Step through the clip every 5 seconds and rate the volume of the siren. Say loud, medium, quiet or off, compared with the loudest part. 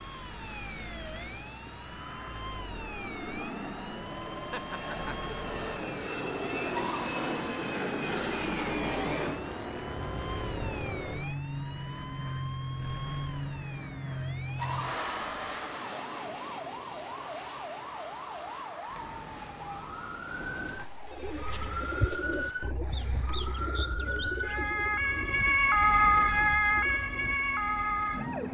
quiet, quiet, quiet, quiet, medium, loud.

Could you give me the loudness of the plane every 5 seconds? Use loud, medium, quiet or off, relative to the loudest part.
medium, loud, loud, medium, quiet, quiet.